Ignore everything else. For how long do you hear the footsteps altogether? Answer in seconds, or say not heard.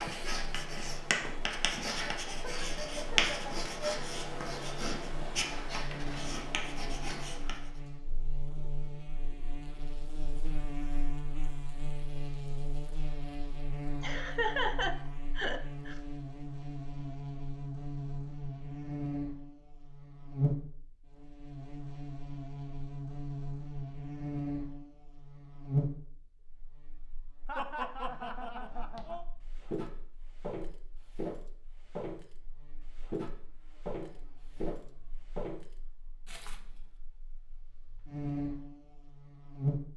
7 s.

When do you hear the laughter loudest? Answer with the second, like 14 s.
15 s.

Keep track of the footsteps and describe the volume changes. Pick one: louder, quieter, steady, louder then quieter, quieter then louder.
quieter.